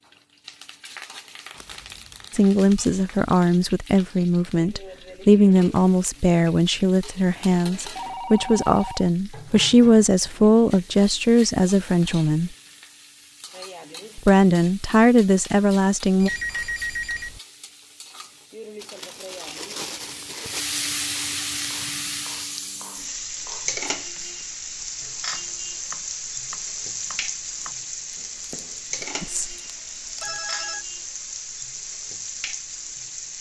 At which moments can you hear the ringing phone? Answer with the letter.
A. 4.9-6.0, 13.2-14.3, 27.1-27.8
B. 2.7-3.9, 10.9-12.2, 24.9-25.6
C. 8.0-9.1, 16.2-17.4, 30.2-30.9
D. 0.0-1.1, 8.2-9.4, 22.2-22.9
C.